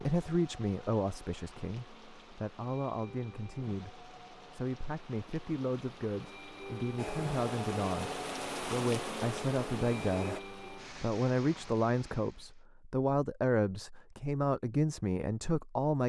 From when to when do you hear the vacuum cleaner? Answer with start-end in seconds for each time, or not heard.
7.0-10.4.